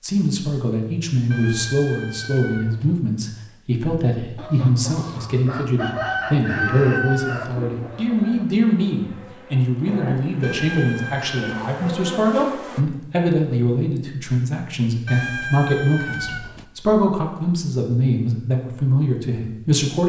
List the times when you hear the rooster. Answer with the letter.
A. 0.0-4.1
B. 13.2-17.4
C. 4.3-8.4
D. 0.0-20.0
C.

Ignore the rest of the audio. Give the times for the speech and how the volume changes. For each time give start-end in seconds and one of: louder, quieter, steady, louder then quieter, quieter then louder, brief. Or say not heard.
0.0-20.0 steady.